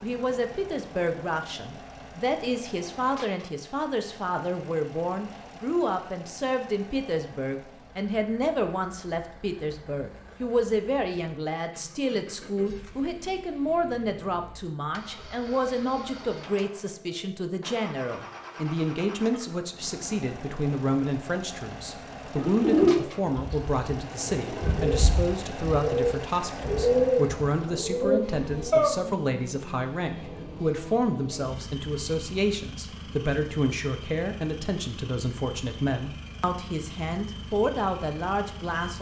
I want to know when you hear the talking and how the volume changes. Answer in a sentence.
You can hear the talking from 0.0 to 38.9 s, at a steady volume.